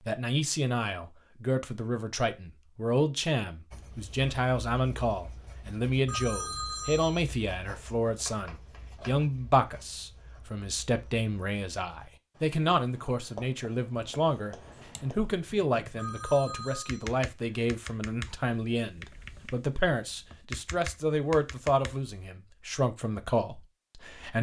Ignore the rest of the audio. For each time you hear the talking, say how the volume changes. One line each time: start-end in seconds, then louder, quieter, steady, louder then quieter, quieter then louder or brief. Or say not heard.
0.0-24.3 steady.